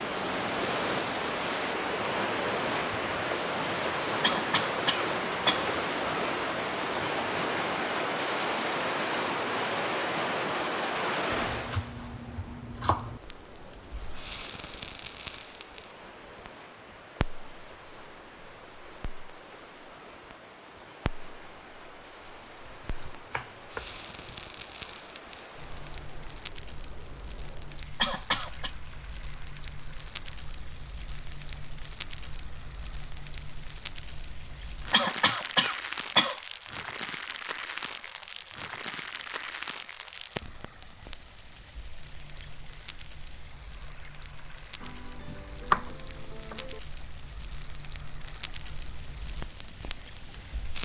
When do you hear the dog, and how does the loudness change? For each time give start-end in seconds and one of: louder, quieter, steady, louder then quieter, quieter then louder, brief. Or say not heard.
not heard.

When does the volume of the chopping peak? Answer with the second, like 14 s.
46 s.